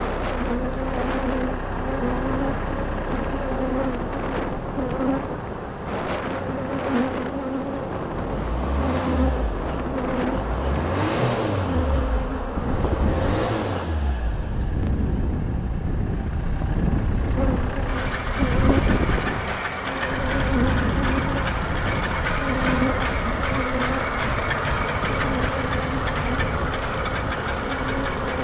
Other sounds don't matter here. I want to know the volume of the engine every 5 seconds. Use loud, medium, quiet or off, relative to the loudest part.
medium, medium, loud, medium, loud, loud.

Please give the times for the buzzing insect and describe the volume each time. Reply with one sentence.
The buzzing insect can be heard from 0.1 to 13.9 s, at a steady volume; and from 17.4 to 28.3 s, at a steady volume.